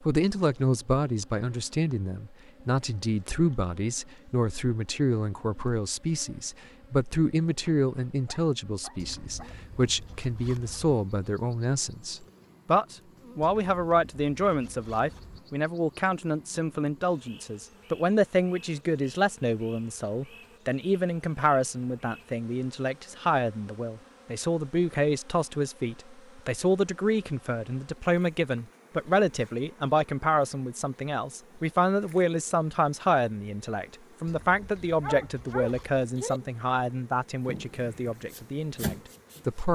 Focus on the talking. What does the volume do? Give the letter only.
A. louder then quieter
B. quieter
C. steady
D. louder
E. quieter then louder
C.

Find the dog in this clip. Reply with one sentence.
You can hear the dog from 7.9 to 9.6 s and from 35.0 to 36.4 s.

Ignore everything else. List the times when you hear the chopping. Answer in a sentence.
The chopping can be heard from 37.5 to 39.7 s.